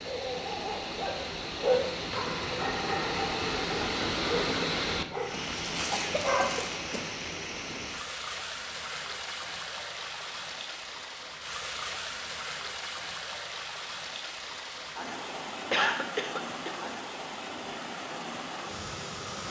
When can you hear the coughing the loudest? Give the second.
16 s.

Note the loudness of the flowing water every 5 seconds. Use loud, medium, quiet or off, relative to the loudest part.
loud, loud, medium, medium.